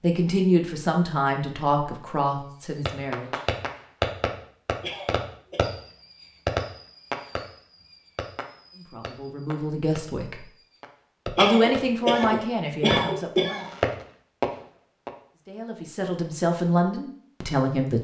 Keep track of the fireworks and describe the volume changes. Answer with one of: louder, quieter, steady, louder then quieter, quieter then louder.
quieter then louder.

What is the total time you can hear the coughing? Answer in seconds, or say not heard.
3 s.